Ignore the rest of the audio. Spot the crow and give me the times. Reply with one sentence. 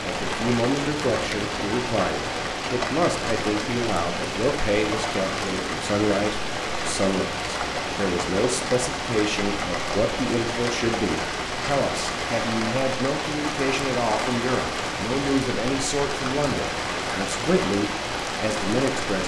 The crow can't be heard in this clip.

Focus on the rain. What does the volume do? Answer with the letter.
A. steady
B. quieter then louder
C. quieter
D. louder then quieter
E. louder
A.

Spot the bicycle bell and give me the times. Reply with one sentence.
You can't hear the bicycle bell here.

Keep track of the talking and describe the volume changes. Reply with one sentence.
The loudness of the talking stays about the same.